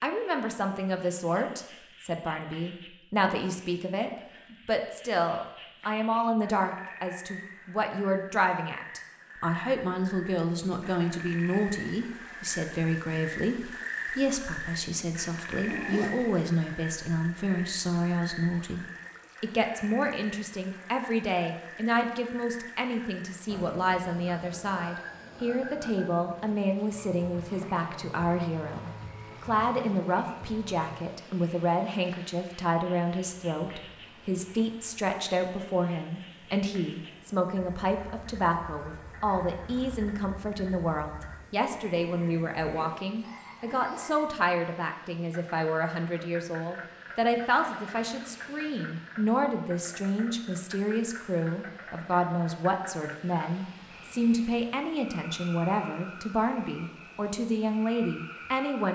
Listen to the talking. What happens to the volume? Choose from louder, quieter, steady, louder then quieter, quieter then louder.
steady.